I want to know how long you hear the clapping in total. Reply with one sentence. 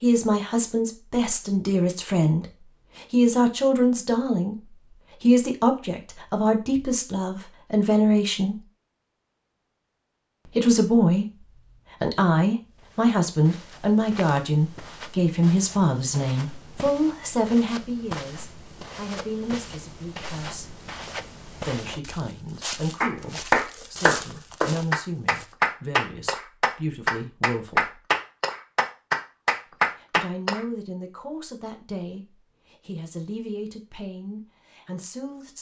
You can hear the clapping for 8 seconds altogether.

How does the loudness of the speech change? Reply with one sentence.
The volume of the speech goes down.